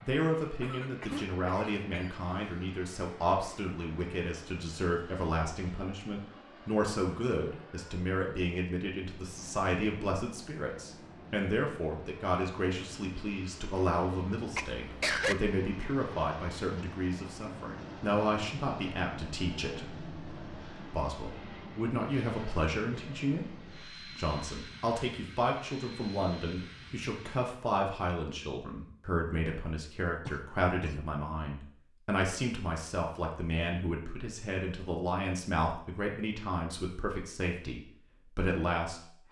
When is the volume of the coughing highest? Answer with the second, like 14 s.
15 s.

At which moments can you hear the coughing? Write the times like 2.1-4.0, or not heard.
0.6-2.5, 14.5-15.3, 30.2-30.9.